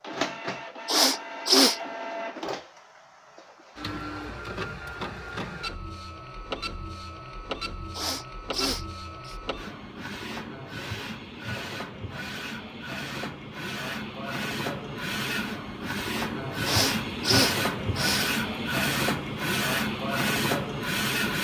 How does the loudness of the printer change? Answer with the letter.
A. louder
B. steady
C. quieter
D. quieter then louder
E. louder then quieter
A.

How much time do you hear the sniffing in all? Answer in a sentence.
You can hear the sniffing for 4 seconds altogether.